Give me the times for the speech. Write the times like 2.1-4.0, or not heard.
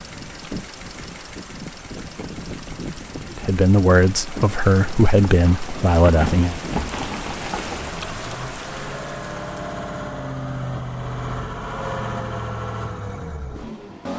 3.3-6.6.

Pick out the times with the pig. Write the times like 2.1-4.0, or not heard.
not heard.